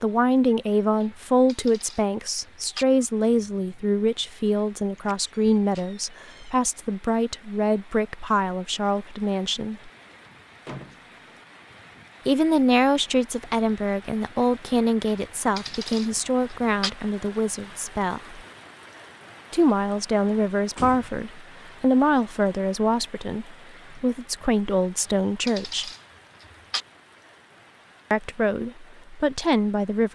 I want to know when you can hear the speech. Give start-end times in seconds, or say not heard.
0.0-9.9, 12.2-18.4, 19.5-25.9, 28.1-30.1.